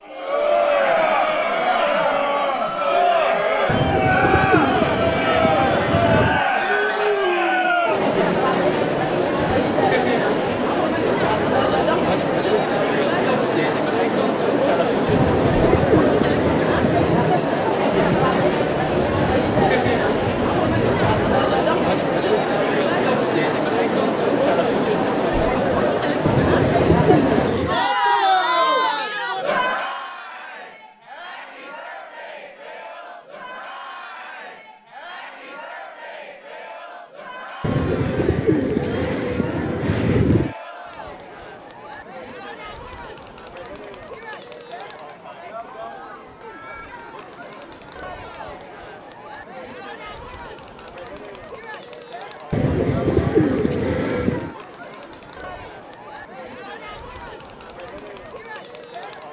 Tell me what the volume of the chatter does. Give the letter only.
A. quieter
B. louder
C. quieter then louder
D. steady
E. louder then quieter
A.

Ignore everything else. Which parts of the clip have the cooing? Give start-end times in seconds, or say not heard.
3.6-6.5, 15.1-17.3, 26.2-27.9, 37.6-40.5, 52.5-54.5.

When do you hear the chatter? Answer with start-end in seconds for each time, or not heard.
0.1-59.2.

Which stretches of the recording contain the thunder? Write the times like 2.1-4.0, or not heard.
17.9-21.4.